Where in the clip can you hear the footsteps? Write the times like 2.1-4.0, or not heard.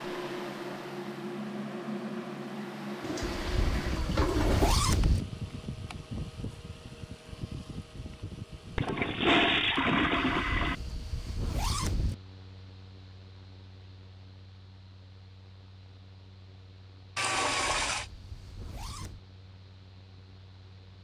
not heard.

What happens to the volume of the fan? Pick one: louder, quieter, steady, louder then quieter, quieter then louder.
quieter.